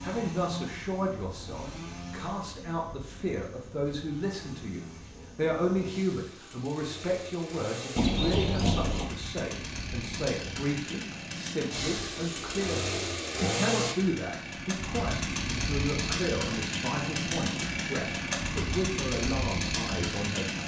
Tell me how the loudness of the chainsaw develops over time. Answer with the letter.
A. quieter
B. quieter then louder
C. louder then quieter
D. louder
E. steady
D.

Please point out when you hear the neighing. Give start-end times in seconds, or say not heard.
8.0-9.1.